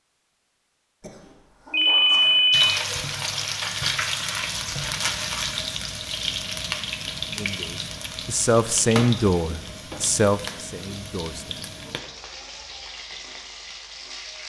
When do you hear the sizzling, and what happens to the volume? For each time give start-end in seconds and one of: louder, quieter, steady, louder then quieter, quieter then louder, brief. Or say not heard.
2.5-14.4 quieter.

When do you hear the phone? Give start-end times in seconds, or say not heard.
1.7-2.8.